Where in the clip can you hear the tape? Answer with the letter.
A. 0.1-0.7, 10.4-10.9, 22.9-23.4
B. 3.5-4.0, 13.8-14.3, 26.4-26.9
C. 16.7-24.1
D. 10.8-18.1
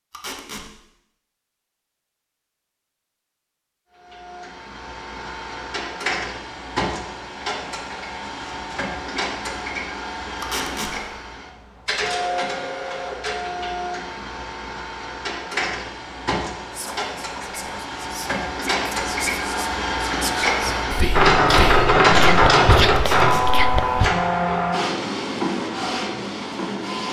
A.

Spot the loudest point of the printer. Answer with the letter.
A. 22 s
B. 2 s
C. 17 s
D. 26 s
A.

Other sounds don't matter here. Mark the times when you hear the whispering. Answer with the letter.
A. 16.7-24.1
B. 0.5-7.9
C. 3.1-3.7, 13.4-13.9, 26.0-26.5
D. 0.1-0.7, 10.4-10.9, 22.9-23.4
A.